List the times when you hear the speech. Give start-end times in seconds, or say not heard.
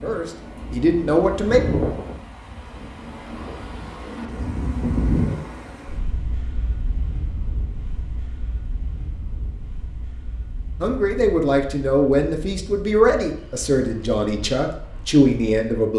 0.0-1.6, 10.8-15.9.